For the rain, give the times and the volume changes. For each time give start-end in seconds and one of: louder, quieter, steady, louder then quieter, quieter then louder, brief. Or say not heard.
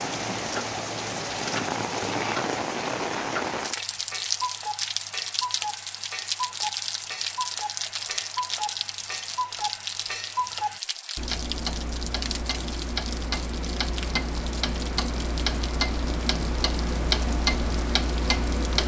0.0-18.8 quieter.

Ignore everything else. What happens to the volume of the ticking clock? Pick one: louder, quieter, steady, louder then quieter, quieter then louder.
louder.